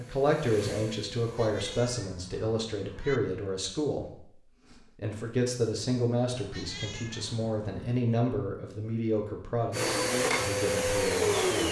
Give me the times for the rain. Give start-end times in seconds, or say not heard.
not heard.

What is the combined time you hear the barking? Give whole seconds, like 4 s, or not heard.
not heard.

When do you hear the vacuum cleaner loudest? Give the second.
11 s.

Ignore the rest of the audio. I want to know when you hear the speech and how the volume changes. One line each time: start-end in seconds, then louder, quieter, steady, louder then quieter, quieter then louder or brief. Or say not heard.
0.0-11.6 steady.